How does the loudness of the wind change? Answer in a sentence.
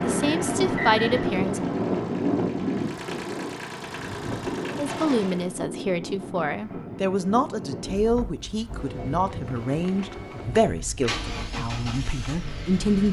The loudness of the wind goes down.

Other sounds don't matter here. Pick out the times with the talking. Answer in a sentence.
You can hear the talking from 0.0 to 1.6 s and from 4.8 to 13.0 s.